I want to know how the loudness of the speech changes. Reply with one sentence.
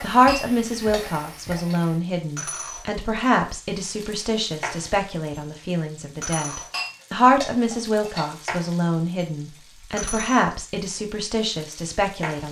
The volume of the speech stays about the same.